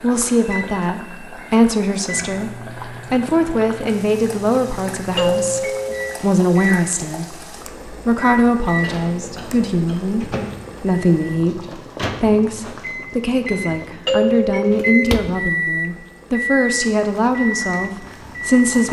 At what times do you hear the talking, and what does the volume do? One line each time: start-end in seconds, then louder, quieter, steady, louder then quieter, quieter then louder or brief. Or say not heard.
0.0-18.8 steady.